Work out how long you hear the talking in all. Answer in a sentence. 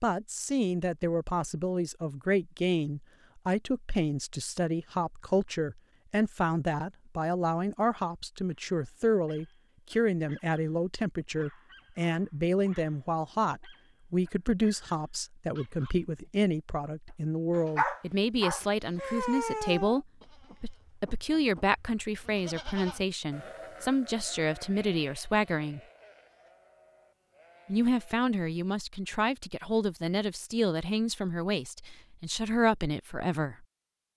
You can hear the talking for 32 seconds altogether.